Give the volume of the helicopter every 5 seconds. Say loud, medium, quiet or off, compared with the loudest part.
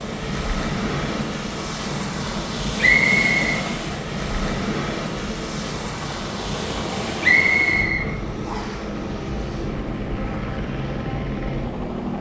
medium, loud, loud.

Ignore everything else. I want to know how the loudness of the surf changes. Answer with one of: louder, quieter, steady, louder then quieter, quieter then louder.
quieter.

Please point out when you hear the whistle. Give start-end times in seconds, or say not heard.
2.8-3.6, 7.2-8.8.